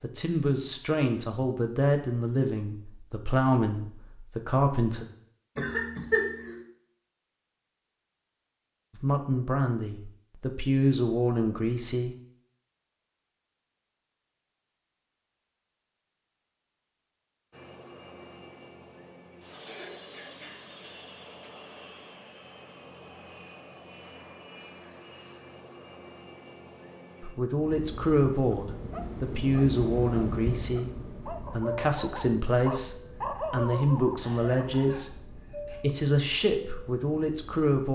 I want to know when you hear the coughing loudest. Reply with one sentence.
The loudest moment of the coughing is at 6 seconds.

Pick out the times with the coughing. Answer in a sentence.
You can hear the coughing from 5.5 to 6.5 s, from 19.6 to 21.5 s and from 34.1 to 35.9 s.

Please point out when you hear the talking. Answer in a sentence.
The talking can be heard from 0.0 to 5.0 s, from 8.9 to 12.2 s and from 27.2 to 37.9 s.